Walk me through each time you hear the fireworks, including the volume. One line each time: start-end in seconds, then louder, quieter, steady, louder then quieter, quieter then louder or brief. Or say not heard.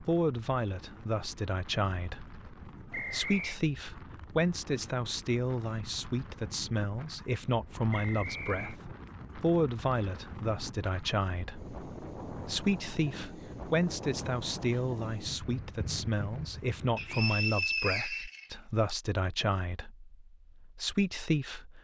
not heard.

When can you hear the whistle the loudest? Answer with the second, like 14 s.
18 s.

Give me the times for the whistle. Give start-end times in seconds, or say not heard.
2.9-3.6, 7.9-8.8, 16.9-18.9.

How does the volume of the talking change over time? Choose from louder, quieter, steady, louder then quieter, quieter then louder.
steady.